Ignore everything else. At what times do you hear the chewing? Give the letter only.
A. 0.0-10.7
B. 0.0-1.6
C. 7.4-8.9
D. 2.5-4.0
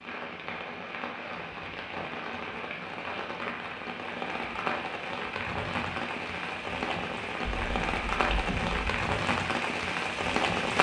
C.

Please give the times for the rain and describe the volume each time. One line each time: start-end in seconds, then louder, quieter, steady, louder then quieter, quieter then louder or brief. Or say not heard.
0.0-10.7 louder.